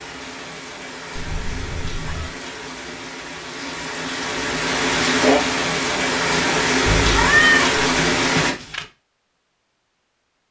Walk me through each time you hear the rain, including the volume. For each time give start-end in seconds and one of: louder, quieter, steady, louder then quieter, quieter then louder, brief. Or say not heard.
0.0-8.6 louder.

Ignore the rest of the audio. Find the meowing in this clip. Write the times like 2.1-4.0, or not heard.
1.1-2.4, 6.8-8.8.